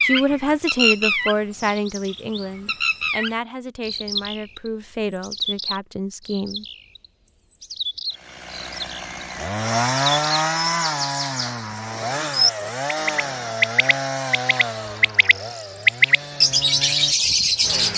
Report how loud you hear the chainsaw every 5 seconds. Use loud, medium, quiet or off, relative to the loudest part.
off, loud, loud, medium.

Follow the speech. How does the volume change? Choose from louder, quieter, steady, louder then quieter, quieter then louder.
quieter.